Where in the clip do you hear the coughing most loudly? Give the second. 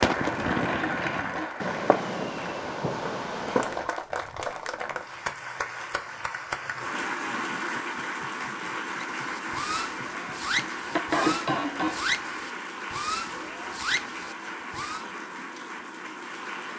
11 s.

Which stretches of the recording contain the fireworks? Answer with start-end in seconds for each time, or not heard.
0.0-4.0, 9.2-15.1.